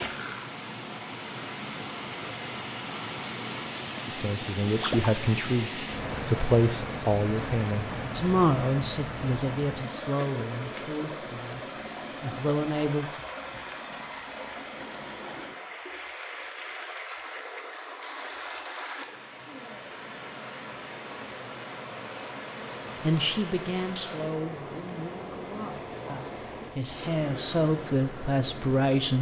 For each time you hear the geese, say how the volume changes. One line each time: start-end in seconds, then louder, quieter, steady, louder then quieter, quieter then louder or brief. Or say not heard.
not heard.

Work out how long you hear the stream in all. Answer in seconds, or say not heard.
29 s.